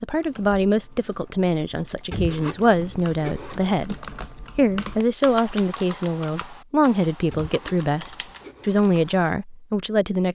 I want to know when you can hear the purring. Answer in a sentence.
The purring can't be heard in this clip.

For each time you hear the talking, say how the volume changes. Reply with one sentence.
The talking can be heard from 0.0 to 10.3 s, at a steady volume.